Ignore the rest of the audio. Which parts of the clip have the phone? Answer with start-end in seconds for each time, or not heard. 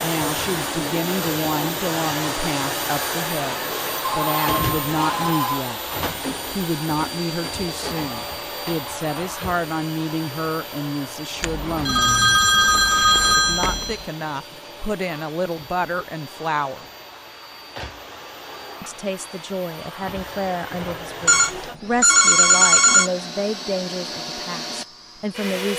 4.1-5.7, 11.4-14.0, 21.2-23.1.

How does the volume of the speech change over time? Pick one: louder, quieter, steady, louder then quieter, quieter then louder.
steady.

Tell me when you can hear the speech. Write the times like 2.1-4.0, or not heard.
0.0-5.8, 6.5-12.2, 13.3-16.9, 18.8-25.7.